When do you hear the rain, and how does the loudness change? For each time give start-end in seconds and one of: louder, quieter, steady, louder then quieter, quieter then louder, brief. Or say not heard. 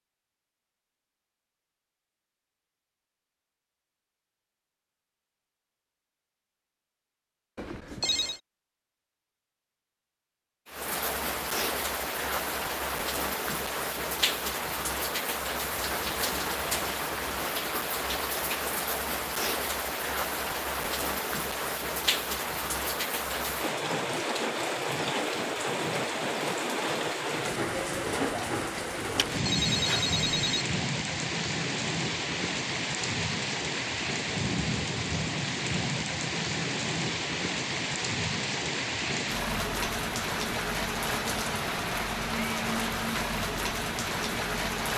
10.7-44.9 steady.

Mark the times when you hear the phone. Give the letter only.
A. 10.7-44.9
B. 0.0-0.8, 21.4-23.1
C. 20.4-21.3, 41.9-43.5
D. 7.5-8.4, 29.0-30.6
D.